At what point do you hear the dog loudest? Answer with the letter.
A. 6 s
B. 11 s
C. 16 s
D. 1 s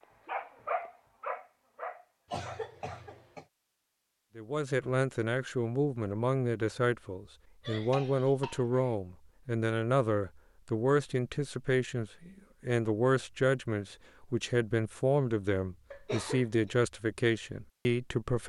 D.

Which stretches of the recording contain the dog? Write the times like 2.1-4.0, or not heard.
0.2-3.0.